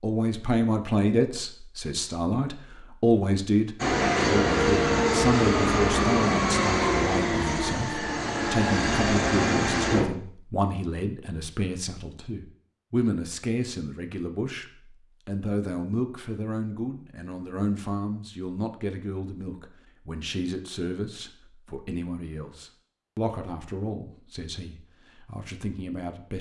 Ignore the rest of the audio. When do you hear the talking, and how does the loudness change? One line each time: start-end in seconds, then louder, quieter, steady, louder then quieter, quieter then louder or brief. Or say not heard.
0.0-26.3 quieter.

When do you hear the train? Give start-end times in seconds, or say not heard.
3.8-10.1.